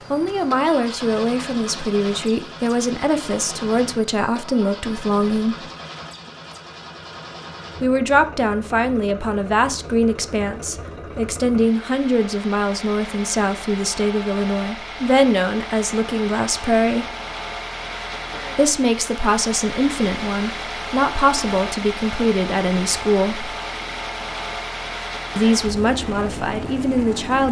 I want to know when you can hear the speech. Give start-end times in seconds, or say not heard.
0.1-5.7, 7.8-17.1, 18.6-23.6, 25.4-27.4.